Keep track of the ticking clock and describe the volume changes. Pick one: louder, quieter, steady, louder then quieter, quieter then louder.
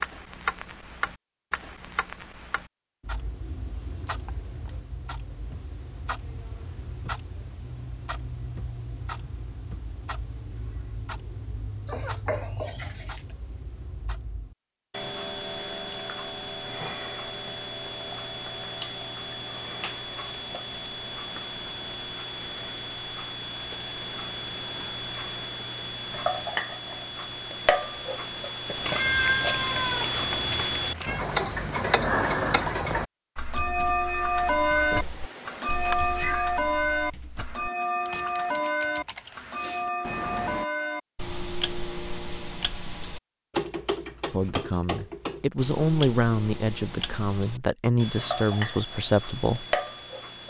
louder then quieter.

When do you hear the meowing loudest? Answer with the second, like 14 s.
29 s.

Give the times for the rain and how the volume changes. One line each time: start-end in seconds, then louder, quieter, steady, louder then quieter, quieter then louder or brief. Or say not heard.
not heard.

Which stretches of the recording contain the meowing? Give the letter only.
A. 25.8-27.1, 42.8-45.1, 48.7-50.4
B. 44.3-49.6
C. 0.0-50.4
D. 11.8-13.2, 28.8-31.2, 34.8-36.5
D.